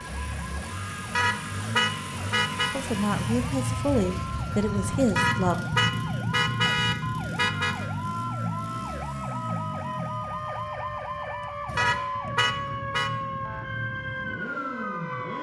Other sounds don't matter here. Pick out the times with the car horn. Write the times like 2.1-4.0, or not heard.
1.1-2.8, 5.2-7.8, 11.8-13.1.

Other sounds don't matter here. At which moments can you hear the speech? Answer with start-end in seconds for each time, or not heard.
2.7-5.6.